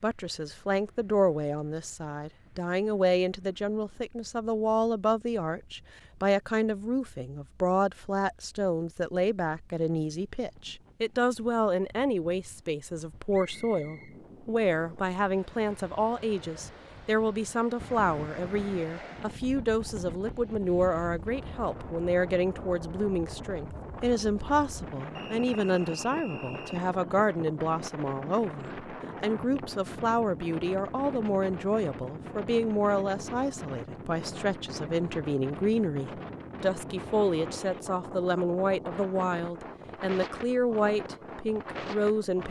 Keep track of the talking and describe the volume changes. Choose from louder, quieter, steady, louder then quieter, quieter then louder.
steady.